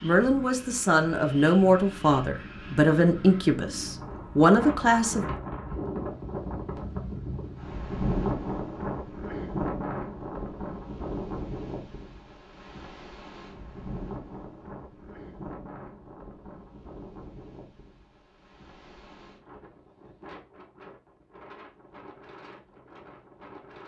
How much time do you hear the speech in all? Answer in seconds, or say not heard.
5 s.